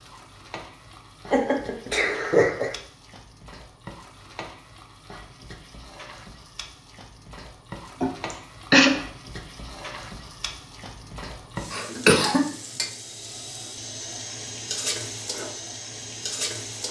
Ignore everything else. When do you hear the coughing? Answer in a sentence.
You can hear the coughing from 1.3 to 2.7 s, from 8.0 to 8.9 s and from 11.7 to 12.4 s.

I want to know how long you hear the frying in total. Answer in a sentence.
You can hear the frying for 17 seconds altogether.